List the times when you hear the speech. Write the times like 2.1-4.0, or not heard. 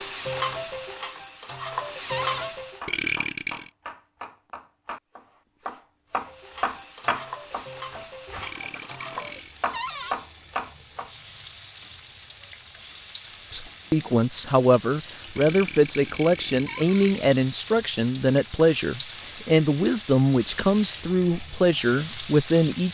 13.5-22.8.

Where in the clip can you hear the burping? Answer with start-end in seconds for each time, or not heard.
2.9-3.7, 8.4-9.6, 15.3-17.3.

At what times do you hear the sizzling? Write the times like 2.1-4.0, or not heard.
0.0-2.9, 6.1-22.8.